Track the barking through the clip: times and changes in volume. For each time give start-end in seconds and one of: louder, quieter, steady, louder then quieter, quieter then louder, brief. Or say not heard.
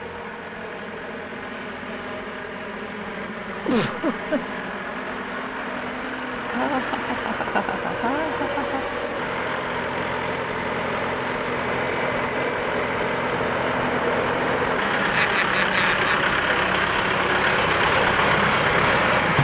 not heard.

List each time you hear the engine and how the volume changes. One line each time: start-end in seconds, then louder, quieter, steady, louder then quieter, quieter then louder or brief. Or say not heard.
0.0-19.3 louder.